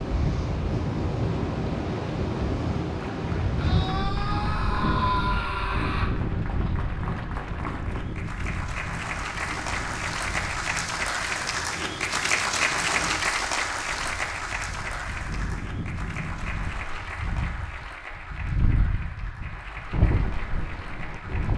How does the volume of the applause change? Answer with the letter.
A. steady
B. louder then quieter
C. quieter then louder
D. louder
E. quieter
B.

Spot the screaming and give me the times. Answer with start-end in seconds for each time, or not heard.
3.6-6.1.